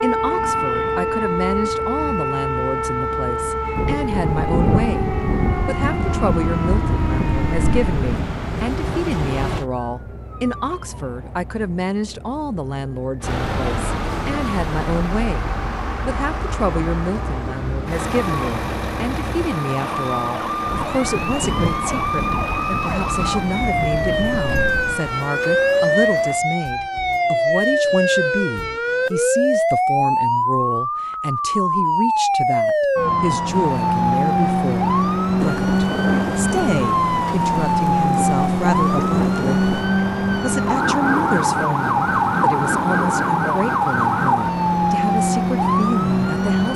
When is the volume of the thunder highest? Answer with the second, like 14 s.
5 s.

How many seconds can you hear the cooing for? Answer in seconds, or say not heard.
not heard.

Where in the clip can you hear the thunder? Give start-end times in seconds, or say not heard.
3.8-8.2, 20.6-25.0, 35.4-39.9.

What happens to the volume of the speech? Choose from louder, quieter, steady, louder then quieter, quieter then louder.
steady.